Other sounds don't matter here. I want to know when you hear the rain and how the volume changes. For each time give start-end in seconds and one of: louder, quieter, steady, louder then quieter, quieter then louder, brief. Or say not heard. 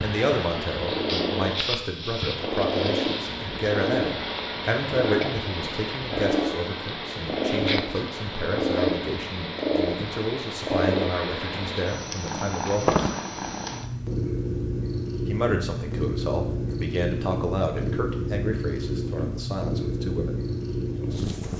not heard.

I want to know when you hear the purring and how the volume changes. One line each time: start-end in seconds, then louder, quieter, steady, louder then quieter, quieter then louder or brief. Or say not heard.
0.0-21.5 steady.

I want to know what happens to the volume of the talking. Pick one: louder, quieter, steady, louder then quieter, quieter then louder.
steady.